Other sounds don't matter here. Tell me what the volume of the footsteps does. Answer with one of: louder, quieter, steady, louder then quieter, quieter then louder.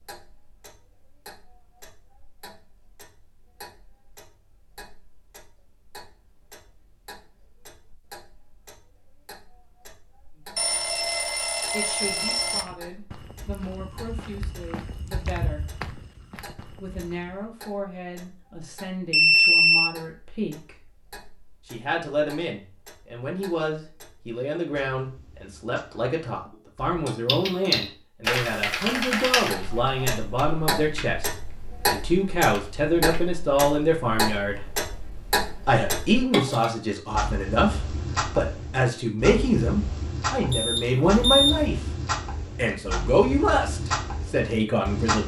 louder then quieter.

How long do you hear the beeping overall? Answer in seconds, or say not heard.
4 s.